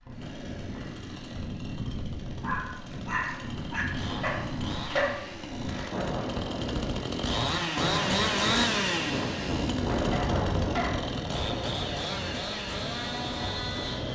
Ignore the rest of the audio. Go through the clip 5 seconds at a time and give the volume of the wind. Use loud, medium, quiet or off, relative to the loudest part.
medium, loud, loud.